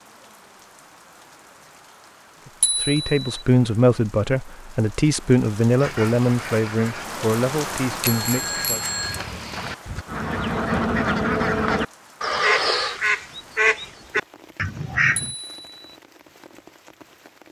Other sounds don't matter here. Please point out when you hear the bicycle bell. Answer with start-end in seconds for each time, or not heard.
2.6-3.2, 8.0-9.2, 15.2-15.9.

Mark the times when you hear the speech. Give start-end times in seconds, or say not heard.
2.5-8.9.